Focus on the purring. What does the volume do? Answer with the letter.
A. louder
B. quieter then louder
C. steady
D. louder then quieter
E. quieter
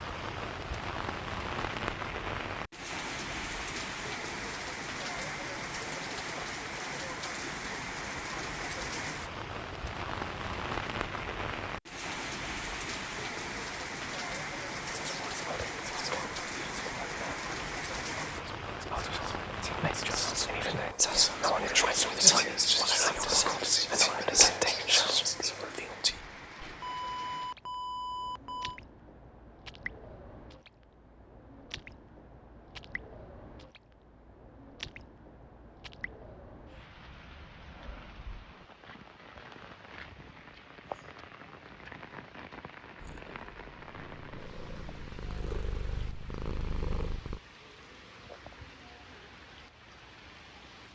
A.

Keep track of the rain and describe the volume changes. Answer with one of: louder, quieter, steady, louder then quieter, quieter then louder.
quieter.